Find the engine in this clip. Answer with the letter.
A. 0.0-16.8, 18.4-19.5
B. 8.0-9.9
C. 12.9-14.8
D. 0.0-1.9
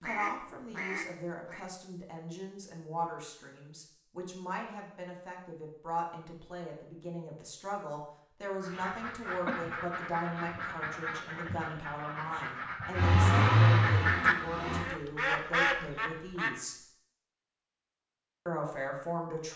C.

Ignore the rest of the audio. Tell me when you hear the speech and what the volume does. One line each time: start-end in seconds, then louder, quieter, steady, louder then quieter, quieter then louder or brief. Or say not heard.
0.0-16.8 steady
18.4-19.5 brief.